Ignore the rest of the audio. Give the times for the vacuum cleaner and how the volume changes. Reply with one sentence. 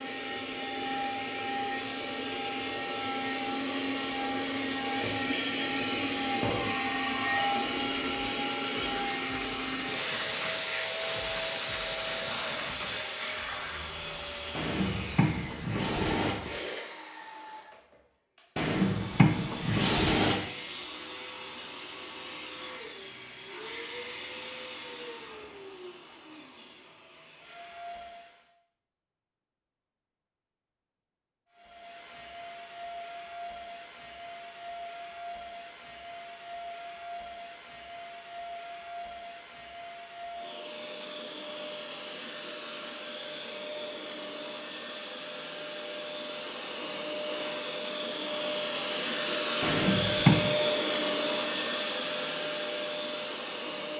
The vacuum cleaner can be heard from 0.0 to 28.5 s, getting quieter; and from 31.5 to 53.9 s, getting louder.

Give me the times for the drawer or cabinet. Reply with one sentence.
The drawer or cabinet can be heard from 14.6 to 16.4 s, from 18.6 to 20.4 s and from 49.6 to 50.4 s.